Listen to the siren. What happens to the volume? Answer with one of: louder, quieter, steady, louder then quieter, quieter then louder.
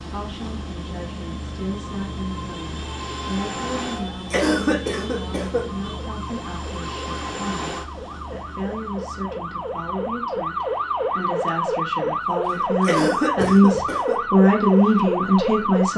louder.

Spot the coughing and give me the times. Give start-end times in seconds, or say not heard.
4.0-5.7, 12.5-14.2.